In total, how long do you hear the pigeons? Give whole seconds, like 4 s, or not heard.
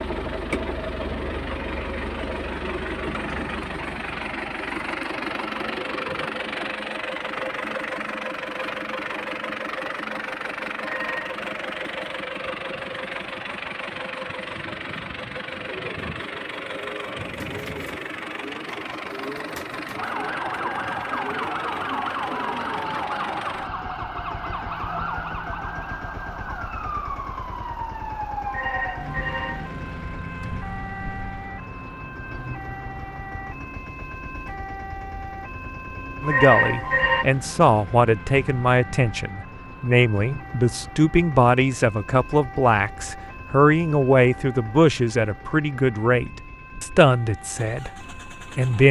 7 s.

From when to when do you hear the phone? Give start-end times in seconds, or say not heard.
10.8-11.3, 28.4-29.8, 36.2-37.2.